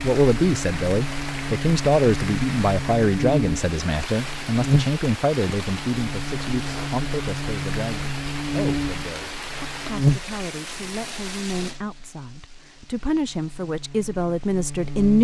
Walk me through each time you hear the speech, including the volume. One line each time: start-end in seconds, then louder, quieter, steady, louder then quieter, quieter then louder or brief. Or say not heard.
0.0-15.1 quieter then louder.